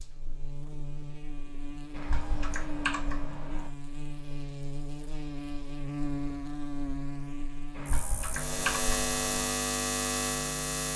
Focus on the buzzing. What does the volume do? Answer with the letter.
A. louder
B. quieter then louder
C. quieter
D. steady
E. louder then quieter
A.